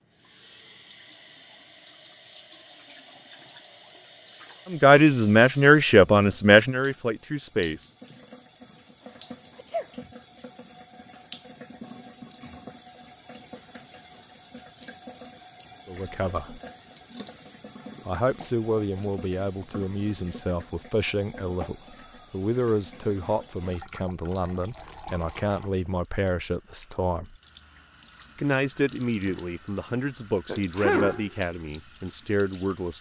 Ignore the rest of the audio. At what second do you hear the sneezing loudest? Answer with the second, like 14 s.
31 s.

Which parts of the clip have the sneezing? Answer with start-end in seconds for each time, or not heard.
9.6-10.1, 30.4-31.3.